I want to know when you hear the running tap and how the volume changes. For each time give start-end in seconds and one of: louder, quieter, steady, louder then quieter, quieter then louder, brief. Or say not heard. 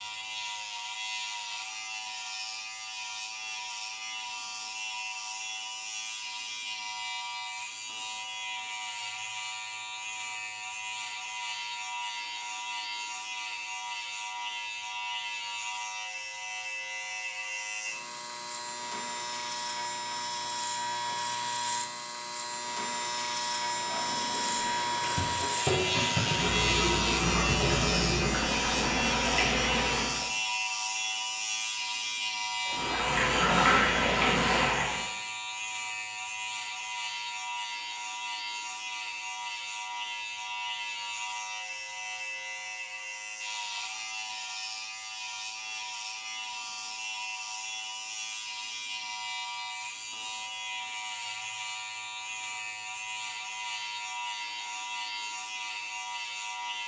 23.7-30.3 louder
32.6-35.0 brief.